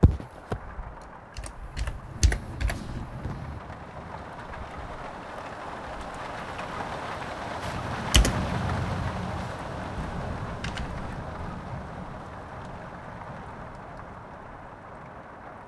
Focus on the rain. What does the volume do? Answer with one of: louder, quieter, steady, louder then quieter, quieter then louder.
louder then quieter.